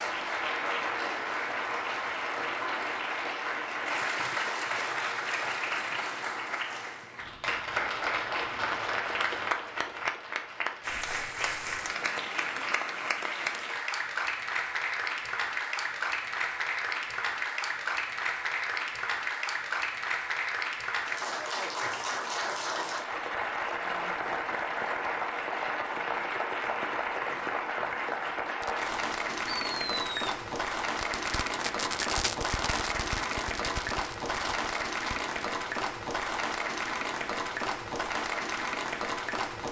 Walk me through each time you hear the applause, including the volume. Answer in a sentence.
You can hear the applause from 0.0 to 39.6 s, at a steady volume.